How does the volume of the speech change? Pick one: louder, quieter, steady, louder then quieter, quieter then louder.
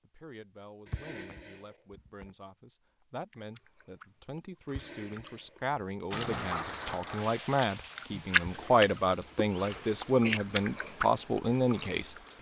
louder.